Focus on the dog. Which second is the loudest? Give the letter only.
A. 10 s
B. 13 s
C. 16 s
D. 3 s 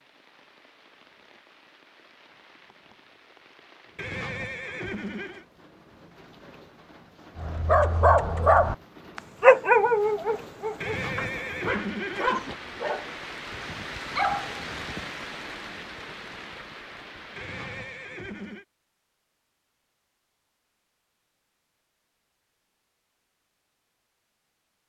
A.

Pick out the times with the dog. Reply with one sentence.
You can hear the dog from 7.3 to 15.1 s.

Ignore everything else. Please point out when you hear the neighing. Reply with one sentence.
You can hear the neighing from 4.0 to 5.5 s, from 10.8 to 12.6 s and from 17.4 to 18.6 s.